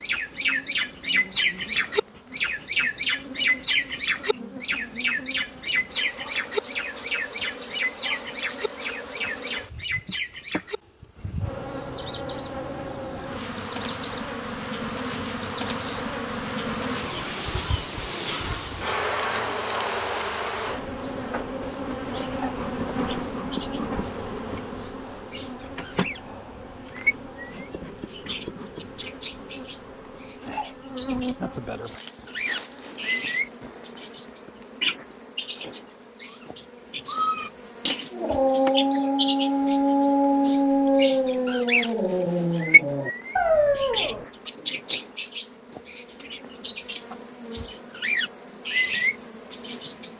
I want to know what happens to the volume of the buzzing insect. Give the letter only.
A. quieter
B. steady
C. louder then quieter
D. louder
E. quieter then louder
C.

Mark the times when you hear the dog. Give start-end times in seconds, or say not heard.
38.1-44.5.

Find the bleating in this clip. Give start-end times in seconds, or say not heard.
not heard.